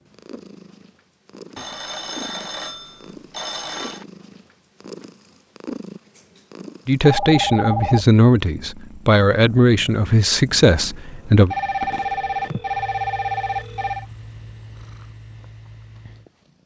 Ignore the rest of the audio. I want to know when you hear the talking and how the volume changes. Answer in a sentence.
The talking can be heard from 6.8 to 11.6 s, at a steady volume.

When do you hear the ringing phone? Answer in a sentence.
The ringing phone can be heard from 1.6 to 4.0 s, from 7.0 to 8.1 s and from 11.5 to 14.1 s.